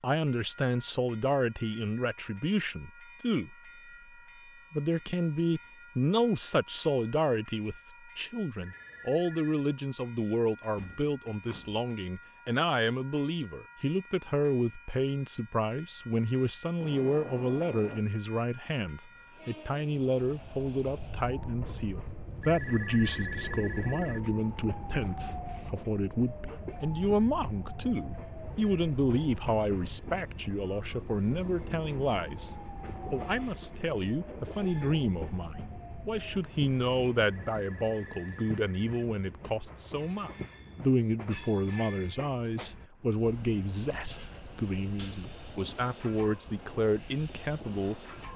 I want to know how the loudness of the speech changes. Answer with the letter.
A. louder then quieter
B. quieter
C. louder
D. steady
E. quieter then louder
D.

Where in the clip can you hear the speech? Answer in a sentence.
The speech can be heard from 0.0 to 3.5 s, from 4.7 to 32.5 s and from 33.1 to 48.3 s.